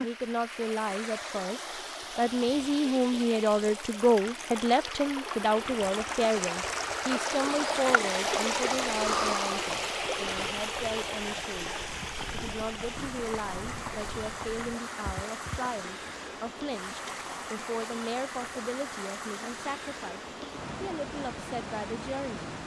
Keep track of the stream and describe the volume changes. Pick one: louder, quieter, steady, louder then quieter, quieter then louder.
louder then quieter.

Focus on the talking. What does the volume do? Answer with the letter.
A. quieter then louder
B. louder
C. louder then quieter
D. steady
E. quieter
E.